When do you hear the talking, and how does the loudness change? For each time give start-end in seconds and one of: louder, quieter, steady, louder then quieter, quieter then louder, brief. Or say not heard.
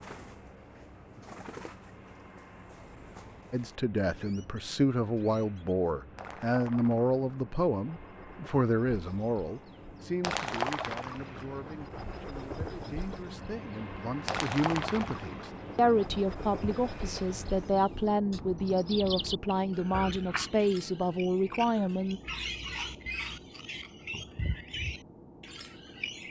3.5-22.2 quieter then louder.